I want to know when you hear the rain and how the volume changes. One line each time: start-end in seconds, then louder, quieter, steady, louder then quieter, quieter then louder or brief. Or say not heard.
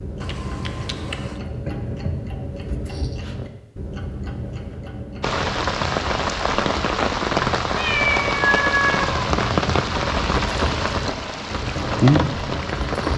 5.2-13.1 steady.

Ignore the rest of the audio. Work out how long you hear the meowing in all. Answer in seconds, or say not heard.
3 s.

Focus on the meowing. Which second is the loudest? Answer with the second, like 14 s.
9 s.